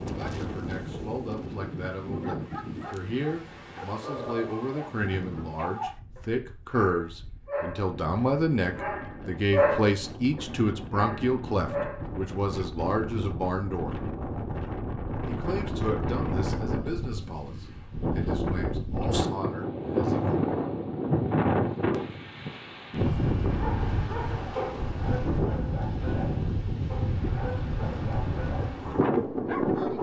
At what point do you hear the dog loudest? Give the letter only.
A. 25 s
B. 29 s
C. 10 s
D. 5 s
C.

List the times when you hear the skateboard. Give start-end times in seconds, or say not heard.
not heard.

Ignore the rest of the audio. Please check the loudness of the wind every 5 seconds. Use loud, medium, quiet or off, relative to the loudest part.
medium, quiet, medium, loud, loud, loud.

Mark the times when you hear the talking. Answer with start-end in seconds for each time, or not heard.
0.0-13.9, 15.2-20.4.